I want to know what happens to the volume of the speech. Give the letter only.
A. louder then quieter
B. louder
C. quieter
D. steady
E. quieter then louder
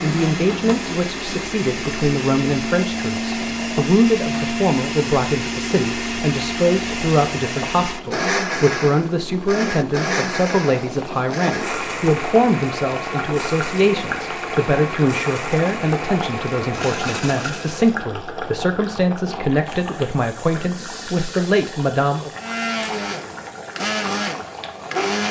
D.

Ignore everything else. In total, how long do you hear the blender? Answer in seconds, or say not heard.
21 s.